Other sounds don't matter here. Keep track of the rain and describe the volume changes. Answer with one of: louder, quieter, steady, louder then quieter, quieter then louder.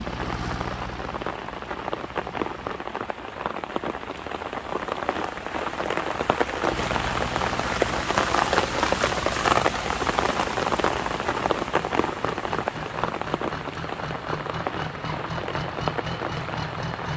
louder then quieter.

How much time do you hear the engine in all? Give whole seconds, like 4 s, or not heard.
13 s.